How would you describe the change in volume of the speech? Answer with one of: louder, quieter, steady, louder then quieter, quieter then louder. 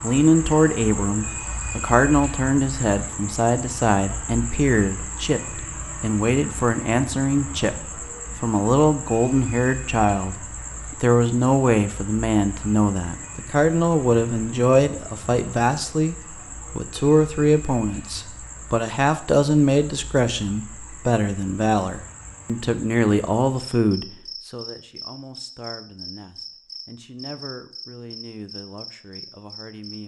quieter.